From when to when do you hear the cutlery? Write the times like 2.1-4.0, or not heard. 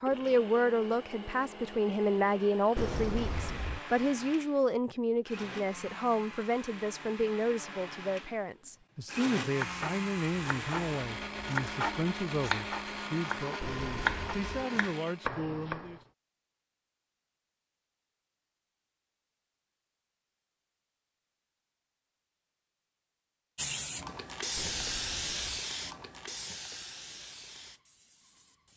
not heard.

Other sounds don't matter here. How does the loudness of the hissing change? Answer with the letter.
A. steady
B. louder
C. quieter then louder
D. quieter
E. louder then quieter
D.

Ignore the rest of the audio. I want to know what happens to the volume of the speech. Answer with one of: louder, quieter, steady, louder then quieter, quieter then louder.
quieter.